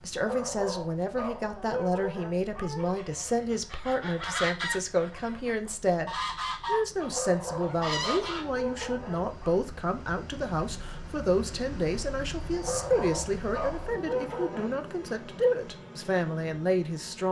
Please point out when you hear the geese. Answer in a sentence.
You can hear the geese from 2.8 to 8.4 s.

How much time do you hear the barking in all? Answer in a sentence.
You can hear the barking for 8 seconds altogether.